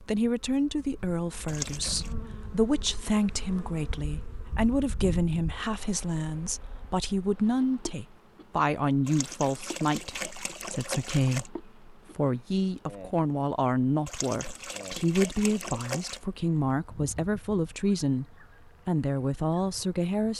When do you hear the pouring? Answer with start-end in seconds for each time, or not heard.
1.4-2.1, 9.1-11.5, 14.1-16.2.